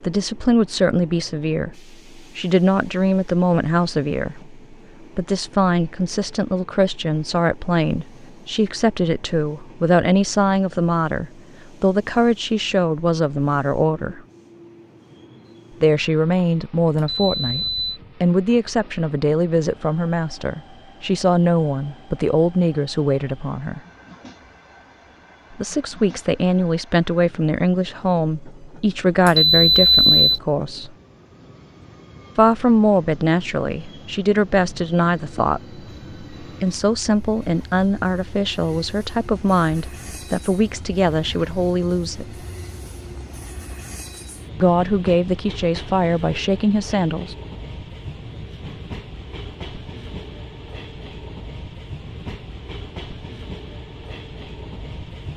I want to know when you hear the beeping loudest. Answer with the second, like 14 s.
30 s.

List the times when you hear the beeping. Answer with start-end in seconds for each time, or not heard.
16.9-18.0, 29.2-30.4.